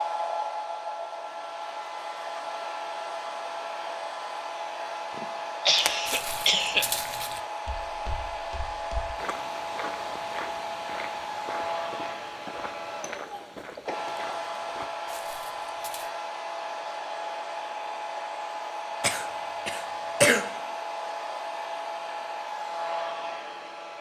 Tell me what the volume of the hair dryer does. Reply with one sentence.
The loudness of the hair dryer stays about the same.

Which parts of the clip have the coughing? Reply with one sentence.
The coughing can be heard from 5.2 to 6.8 s and from 19.0 to 20.4 s.